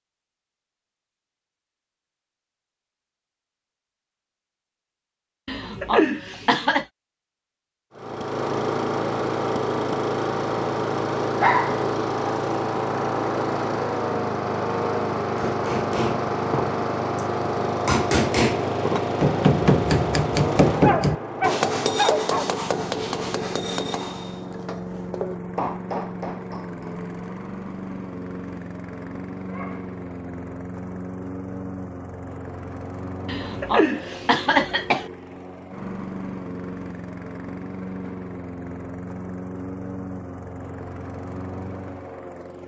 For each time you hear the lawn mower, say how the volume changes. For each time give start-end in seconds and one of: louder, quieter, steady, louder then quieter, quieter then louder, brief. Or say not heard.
8.0-42.6 quieter.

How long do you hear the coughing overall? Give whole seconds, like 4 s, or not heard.
3 s.